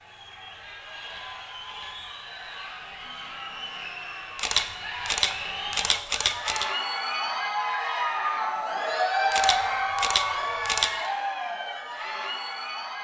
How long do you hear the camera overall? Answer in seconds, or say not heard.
5 s.